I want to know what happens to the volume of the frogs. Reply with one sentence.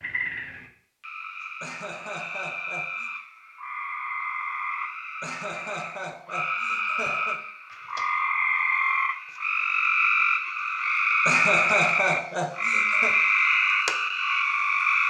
The loudness of the frogs goes up.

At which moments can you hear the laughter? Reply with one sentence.
You can hear the laughter from 1.6 to 3.1 s, from 5.2 to 7.4 s and from 11.2 to 13.2 s.